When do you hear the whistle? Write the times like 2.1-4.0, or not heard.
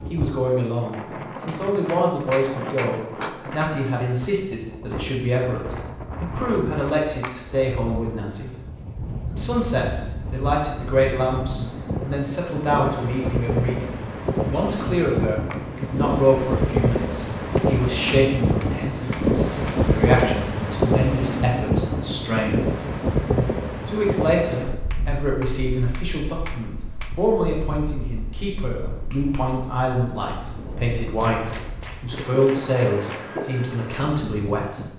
not heard.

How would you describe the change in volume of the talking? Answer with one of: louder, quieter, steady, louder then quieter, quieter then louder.
steady.